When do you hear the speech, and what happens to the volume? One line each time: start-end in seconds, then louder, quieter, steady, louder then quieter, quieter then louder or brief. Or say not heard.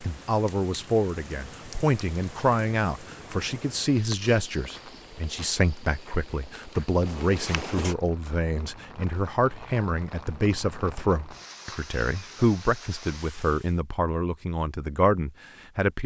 0.0-16.0 steady.